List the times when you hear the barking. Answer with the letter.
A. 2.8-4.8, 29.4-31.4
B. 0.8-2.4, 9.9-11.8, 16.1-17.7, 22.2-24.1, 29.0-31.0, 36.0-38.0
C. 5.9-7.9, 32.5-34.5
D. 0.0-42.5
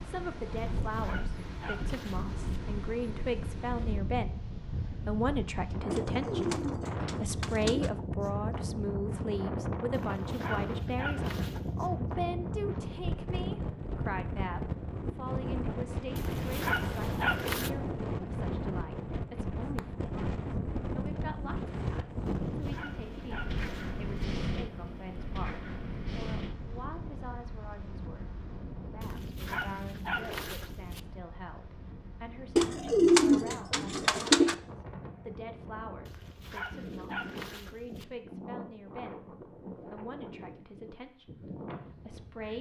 B.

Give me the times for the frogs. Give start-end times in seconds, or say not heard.
not heard.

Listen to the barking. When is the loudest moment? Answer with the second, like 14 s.
17 s.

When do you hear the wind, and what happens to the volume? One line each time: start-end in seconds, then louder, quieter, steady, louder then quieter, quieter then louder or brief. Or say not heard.
0.0-42.5 quieter.